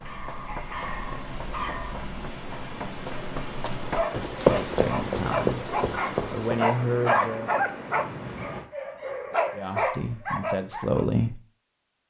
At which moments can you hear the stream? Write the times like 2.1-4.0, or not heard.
0.0-8.7.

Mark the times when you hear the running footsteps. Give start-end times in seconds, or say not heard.
0.0-6.5.